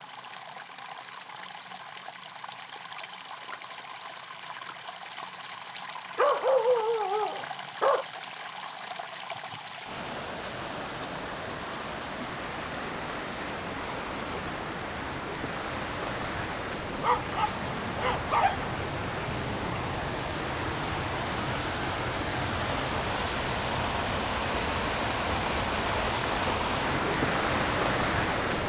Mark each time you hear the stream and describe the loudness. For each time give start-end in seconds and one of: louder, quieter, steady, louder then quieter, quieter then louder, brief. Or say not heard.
0.0-28.6 louder.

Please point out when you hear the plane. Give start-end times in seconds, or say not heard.
not heard.